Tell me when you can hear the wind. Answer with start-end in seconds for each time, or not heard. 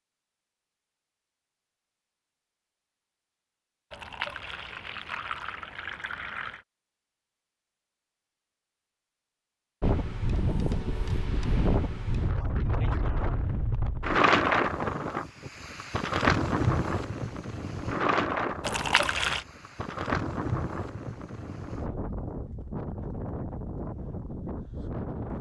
9.8-25.3.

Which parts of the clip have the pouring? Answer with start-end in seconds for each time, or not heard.
3.9-6.7, 18.6-19.4.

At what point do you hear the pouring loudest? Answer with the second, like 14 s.
19 s.